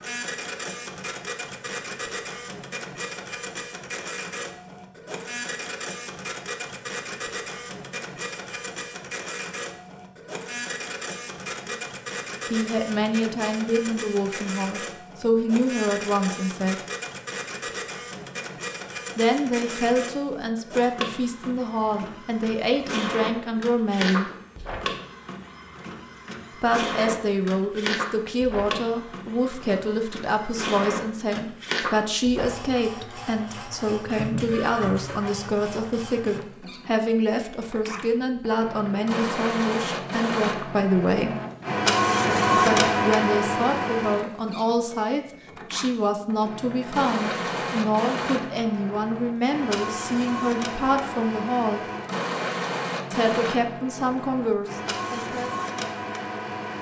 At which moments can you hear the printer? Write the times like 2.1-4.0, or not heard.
0.0-56.7.